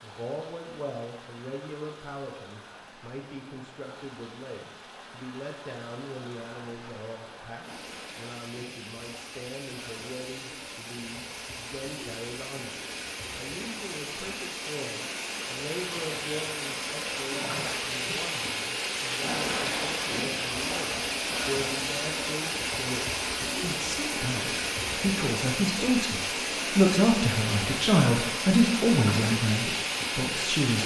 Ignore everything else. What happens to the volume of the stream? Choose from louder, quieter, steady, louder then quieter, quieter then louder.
louder.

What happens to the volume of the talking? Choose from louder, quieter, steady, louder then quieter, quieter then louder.
louder.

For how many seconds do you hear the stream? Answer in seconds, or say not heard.
31 s.